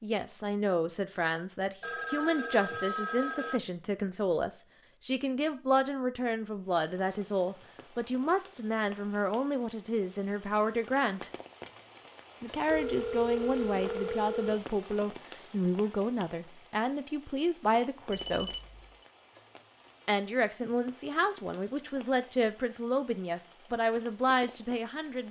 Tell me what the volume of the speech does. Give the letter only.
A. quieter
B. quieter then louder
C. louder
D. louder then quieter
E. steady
E.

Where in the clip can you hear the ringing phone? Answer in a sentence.
You can hear the ringing phone from 1.8 to 3.6 s, from 12.7 to 14.7 s and from 18.1 to 19.1 s.